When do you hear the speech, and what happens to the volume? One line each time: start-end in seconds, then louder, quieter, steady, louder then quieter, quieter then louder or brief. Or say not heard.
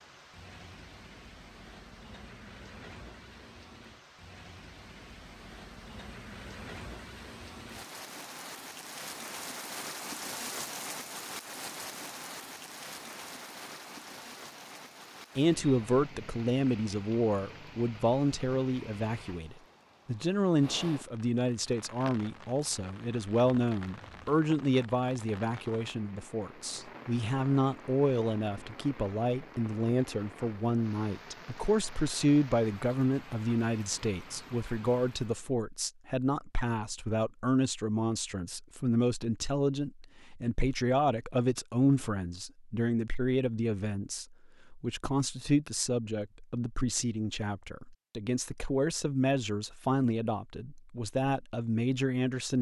15.3-52.5 steady.